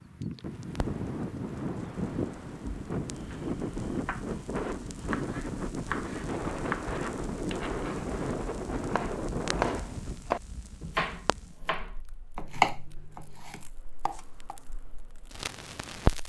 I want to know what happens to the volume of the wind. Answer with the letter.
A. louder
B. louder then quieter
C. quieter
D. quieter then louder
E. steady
E.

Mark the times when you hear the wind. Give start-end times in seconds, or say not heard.
0.0-10.2.